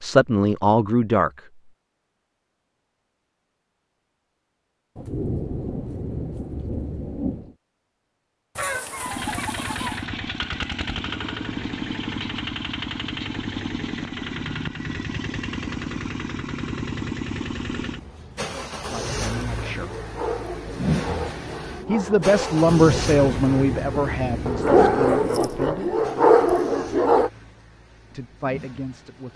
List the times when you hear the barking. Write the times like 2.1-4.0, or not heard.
18.9-27.3.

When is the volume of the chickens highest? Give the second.
9 s.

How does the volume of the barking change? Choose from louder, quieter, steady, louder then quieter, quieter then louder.
louder.